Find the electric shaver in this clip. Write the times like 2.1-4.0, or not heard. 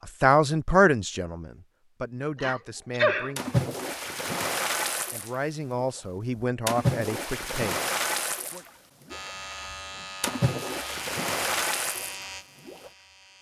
9.1-13.3.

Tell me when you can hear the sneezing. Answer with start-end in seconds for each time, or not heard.
2.4-3.3.